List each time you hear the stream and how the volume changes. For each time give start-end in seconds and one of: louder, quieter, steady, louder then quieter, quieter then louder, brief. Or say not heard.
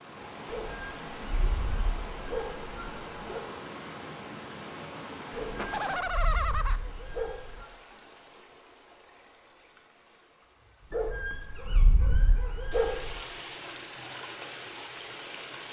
0.0-15.6 quieter then louder.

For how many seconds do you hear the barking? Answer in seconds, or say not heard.
8 s.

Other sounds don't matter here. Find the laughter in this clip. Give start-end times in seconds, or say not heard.
5.5-6.8.